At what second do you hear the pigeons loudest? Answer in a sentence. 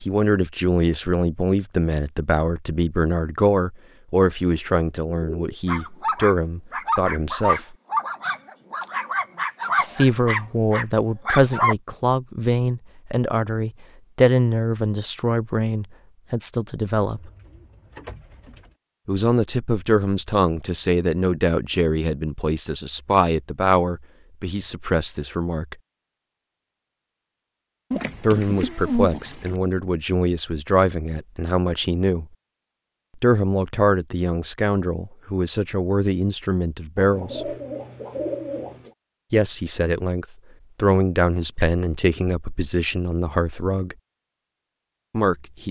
The volume of the pigeons peaks at 29 seconds.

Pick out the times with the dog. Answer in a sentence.
The dog can be heard from 5.7 to 11.8 s.